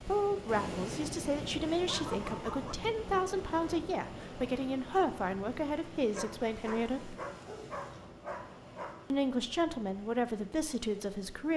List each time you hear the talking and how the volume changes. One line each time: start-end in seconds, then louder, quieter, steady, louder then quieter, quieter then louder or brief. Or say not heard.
0.1-7.2 steady
9.1-11.5 brief.